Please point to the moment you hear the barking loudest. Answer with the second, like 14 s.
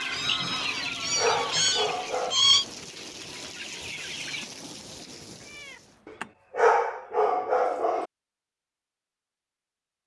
7 s.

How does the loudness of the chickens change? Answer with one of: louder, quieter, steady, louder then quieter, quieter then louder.
quieter then louder.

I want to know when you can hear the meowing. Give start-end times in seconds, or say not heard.
0.1-2.6, 5.5-6.3.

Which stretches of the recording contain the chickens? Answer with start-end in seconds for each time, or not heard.
0.0-4.5.